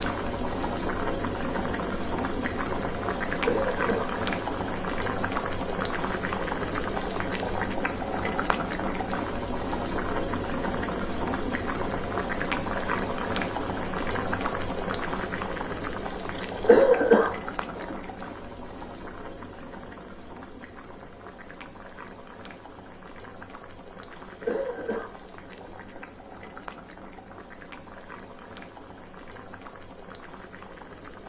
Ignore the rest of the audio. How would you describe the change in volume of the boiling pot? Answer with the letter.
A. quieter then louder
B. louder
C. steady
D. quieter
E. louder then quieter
D.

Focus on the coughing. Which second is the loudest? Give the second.
17 s.